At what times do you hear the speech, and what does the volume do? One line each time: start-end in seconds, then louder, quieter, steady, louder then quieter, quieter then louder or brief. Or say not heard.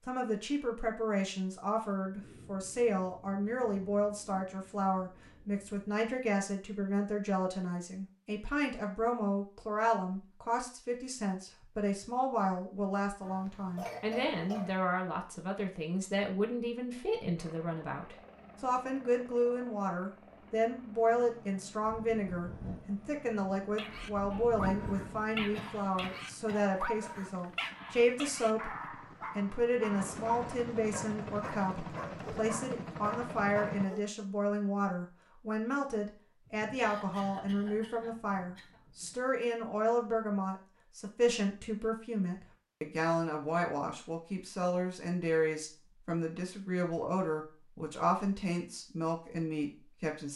0.1-28.8 steady
29.4-50.3 steady.